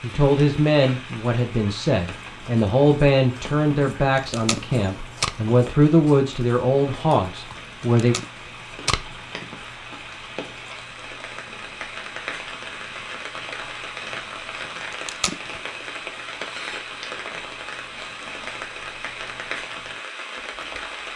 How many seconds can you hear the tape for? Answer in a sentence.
The tape can be heard for 3 seconds in total.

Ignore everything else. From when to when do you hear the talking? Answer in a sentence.
The talking can be heard from 0.0 to 8.2 s.